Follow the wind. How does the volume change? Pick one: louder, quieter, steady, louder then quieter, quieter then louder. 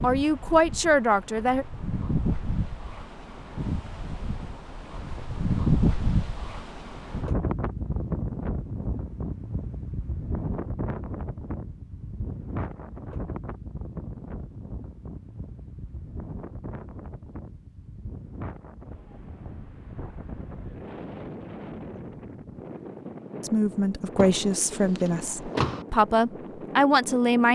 quieter.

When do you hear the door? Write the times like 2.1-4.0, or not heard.
24.1-25.9.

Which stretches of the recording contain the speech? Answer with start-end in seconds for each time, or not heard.
0.0-1.6, 23.4-27.5.